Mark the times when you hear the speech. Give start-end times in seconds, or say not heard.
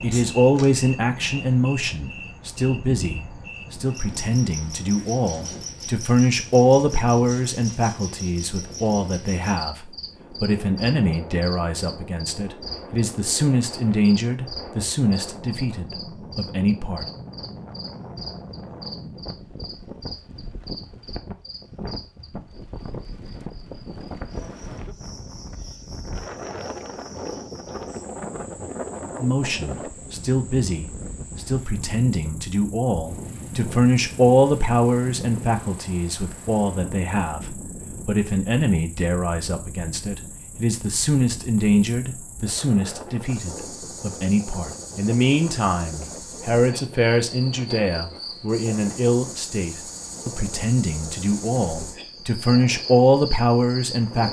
0.0-17.1, 29.2-54.2.